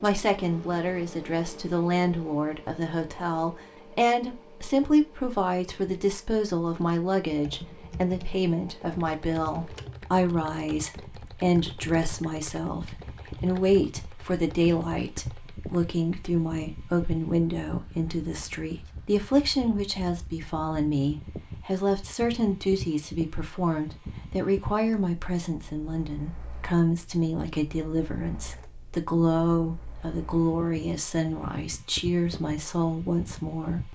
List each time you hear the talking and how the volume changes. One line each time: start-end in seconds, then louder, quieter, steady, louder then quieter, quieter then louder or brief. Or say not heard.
0.0-33.9 steady.